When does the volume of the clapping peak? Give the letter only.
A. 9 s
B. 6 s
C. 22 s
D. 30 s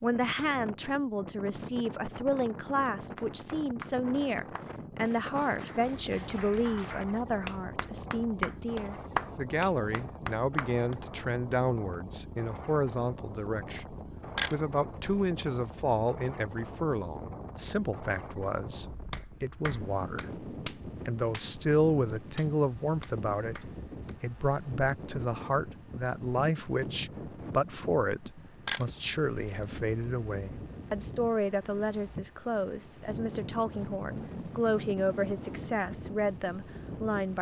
A.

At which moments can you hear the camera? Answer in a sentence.
The camera can be heard from 14.3 to 15.2 s and from 28.6 to 29.6 s.